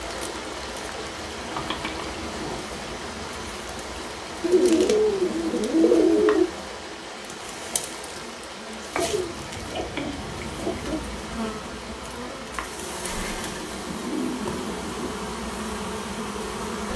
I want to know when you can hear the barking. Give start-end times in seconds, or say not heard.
not heard.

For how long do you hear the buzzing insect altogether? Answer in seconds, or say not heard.
17 s.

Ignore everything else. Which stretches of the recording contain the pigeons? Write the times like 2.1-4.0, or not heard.
1.5-2.6, 4.4-6.5, 8.9-10.9, 13.1-15.1.